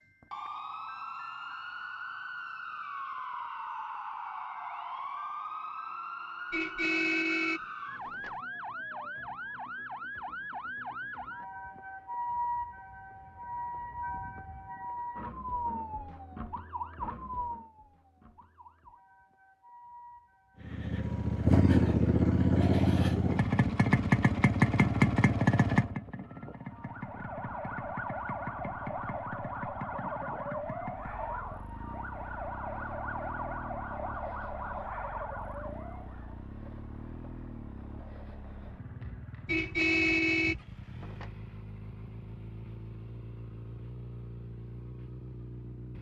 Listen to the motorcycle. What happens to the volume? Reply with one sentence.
The loudness of the motorcycle goes down.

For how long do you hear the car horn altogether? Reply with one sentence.
You can hear the car horn for 4 seconds altogether.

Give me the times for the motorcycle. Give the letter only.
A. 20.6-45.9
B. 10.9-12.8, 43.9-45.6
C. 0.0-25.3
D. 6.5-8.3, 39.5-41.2
A.